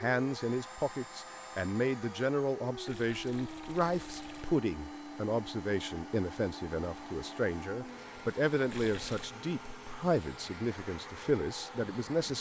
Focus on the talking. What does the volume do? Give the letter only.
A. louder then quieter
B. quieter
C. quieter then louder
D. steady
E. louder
D.